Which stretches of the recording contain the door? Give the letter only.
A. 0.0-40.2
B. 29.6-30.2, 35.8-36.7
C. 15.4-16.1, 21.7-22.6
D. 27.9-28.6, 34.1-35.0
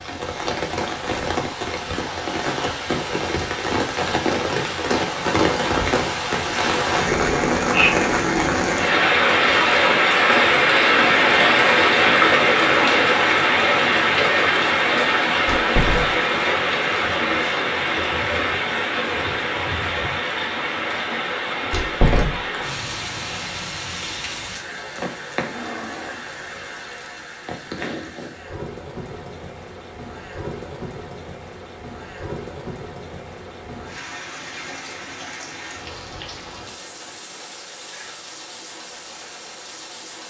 C.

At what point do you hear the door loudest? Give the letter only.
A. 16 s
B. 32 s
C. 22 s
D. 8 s
C.